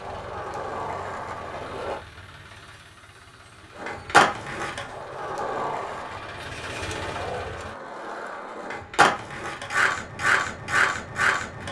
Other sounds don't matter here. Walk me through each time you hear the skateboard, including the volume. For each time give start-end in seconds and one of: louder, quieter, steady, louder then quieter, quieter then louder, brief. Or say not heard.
0.0-2.0 brief
3.8-11.6 quieter then louder.